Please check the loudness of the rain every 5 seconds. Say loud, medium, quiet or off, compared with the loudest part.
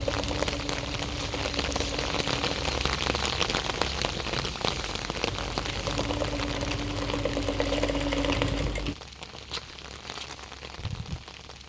loud, medium, medium.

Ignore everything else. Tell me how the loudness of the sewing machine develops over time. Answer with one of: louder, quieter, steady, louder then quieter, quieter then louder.
quieter then louder.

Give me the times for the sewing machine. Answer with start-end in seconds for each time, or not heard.
0.0-8.9.